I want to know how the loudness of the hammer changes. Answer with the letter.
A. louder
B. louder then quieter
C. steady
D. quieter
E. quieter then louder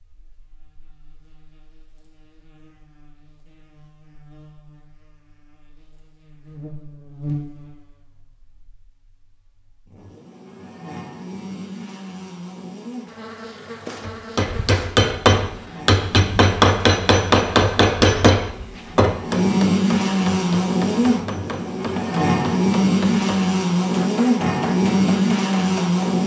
D.